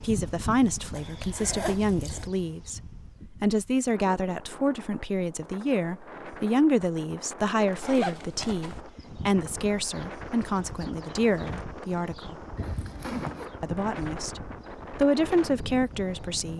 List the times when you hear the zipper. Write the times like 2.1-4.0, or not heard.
0.9-2.3, 7.8-8.8, 12.6-13.5.